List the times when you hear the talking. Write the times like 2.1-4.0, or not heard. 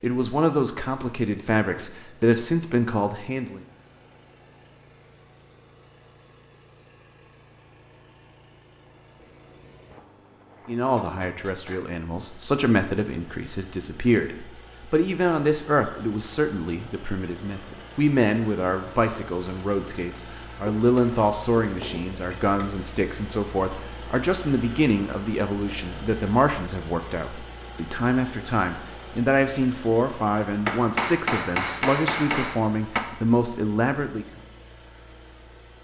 0.0-3.6, 10.7-34.2.